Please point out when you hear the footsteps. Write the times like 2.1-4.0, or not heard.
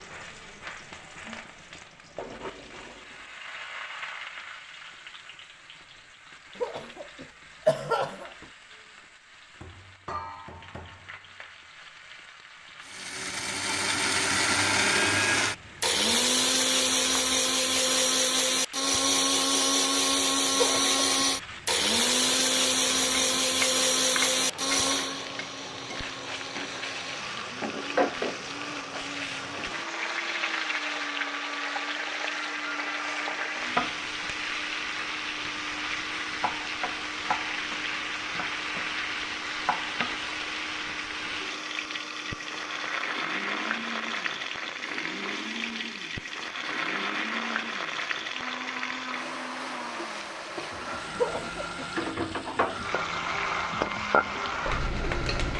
not heard.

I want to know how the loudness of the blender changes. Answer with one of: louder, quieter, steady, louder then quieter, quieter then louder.
quieter.